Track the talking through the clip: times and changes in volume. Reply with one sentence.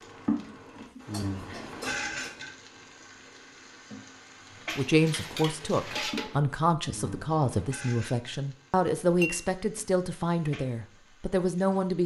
You can hear the talking from 4.8 to 12.0 s, at a steady volume.